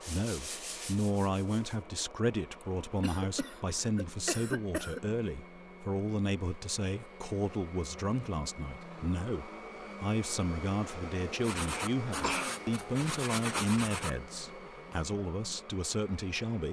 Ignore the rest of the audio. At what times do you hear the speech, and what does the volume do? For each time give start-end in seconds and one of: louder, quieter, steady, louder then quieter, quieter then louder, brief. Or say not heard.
0.1-16.6 steady.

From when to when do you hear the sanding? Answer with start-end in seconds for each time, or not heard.
0.0-1.9, 11.4-14.1.